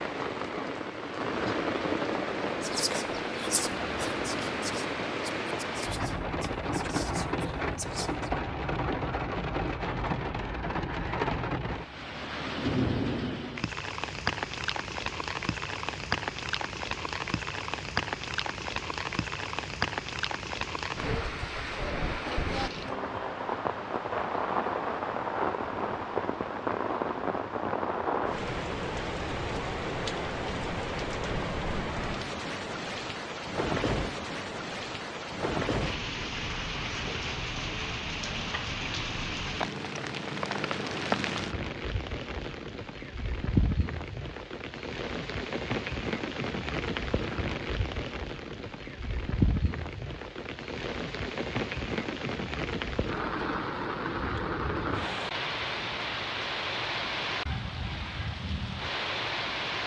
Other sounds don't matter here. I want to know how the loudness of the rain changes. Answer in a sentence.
The loudness of the rain stays about the same.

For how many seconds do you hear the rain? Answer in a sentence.
The rain can be heard for 60 seconds in total.